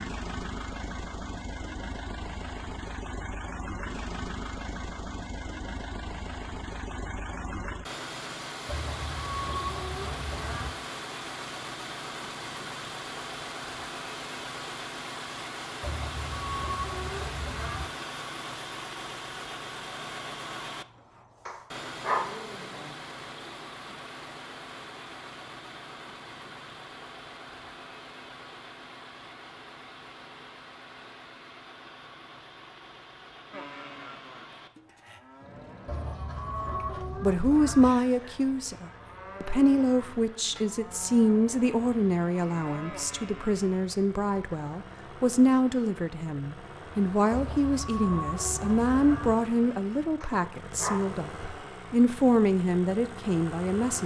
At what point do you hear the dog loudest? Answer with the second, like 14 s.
22 s.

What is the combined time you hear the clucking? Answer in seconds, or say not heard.
8 s.